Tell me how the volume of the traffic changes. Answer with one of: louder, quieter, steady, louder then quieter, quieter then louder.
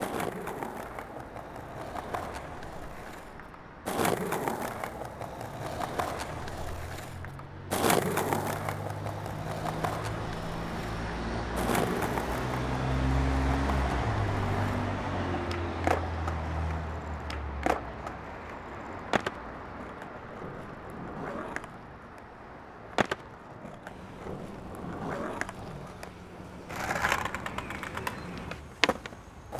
louder then quieter.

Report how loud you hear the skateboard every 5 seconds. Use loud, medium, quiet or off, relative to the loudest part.
loud, loud, loud, loud, medium, loud.